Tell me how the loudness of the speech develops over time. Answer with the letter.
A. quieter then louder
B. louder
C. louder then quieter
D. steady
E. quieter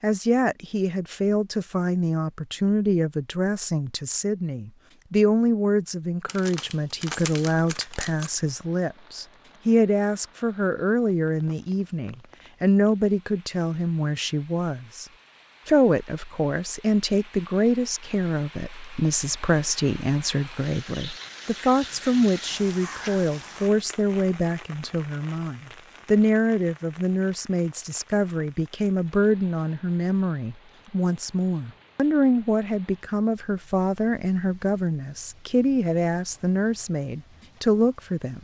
D.